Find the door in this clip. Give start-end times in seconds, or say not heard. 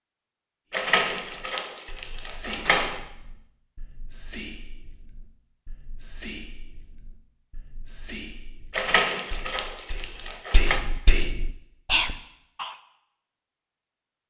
0.7-3.0, 8.7-10.8.